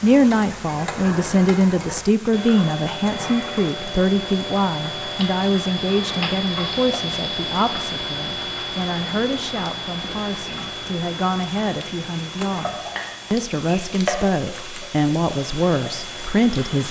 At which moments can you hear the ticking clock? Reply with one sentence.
The ticking clock can be heard from 0.0 to 16.8 s.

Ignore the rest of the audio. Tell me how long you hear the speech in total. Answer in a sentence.
You can hear the speech for 17 seconds altogether.